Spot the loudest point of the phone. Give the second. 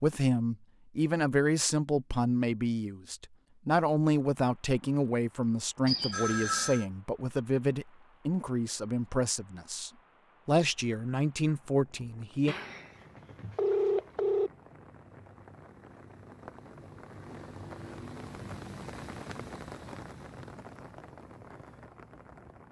14 s.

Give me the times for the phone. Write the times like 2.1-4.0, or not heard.
5.8-6.8, 12.4-14.5.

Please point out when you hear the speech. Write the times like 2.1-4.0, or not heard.
0.0-12.6.